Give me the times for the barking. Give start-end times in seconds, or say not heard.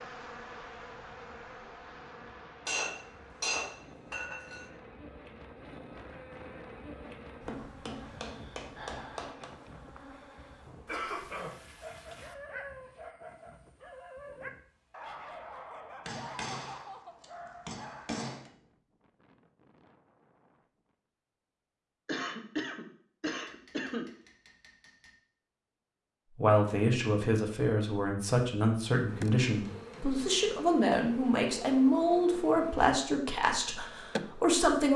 11.8-18.2.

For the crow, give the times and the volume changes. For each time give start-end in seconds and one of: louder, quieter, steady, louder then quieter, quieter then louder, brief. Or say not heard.
not heard.